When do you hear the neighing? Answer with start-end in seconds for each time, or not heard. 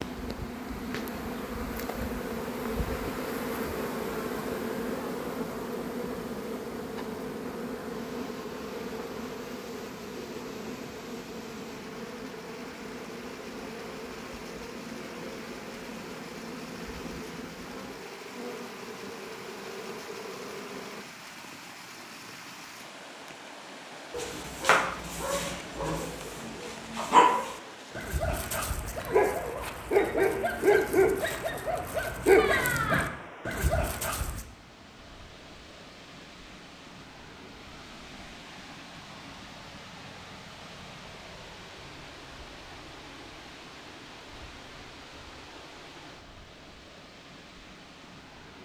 32.4-33.0.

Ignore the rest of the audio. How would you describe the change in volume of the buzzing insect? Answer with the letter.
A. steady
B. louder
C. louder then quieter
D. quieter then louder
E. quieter
E.